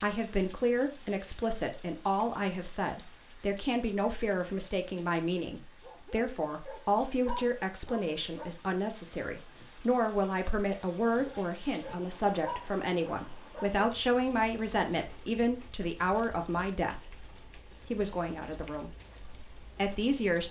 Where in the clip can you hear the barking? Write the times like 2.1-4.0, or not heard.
5.8-8.5, 11.1-13.8.